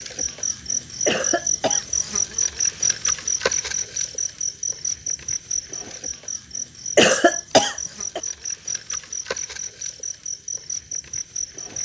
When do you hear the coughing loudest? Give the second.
7 s.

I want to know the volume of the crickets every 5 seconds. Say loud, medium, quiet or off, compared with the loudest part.
loud, medium, medium.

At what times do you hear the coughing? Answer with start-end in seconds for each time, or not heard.
1.1-1.9, 7.0-8.2.